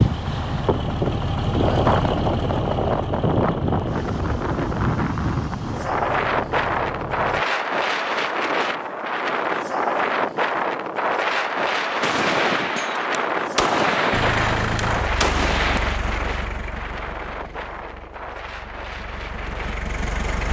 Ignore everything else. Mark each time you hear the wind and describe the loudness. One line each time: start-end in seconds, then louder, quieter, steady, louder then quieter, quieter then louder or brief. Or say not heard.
0.0-20.4 quieter.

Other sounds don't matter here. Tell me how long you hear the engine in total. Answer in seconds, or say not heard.
14 s.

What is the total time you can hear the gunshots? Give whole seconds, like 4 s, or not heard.
4 s.